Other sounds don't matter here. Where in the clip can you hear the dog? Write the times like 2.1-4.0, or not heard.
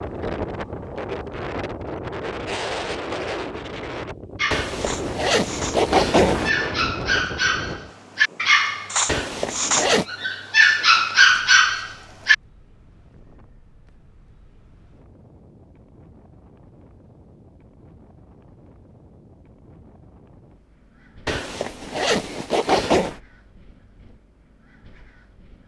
4.3-12.3.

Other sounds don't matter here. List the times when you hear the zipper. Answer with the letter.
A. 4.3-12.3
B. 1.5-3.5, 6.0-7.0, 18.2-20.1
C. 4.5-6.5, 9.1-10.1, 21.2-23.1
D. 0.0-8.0
C.